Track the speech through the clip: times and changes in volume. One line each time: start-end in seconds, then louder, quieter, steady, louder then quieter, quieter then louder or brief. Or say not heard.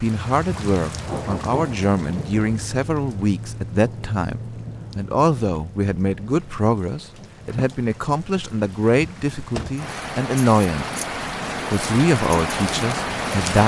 0.0-10.9 steady
11.7-13.6 brief.